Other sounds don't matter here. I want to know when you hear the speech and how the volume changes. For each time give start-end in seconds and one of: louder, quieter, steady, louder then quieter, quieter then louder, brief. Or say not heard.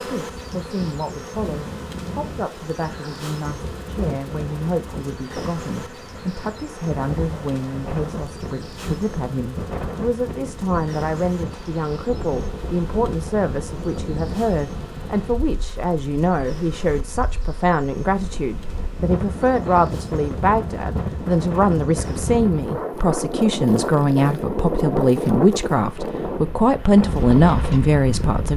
0.0-28.5 louder.